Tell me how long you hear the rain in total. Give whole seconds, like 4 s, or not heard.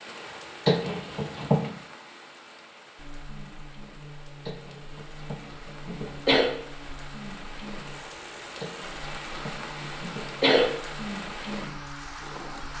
13 s.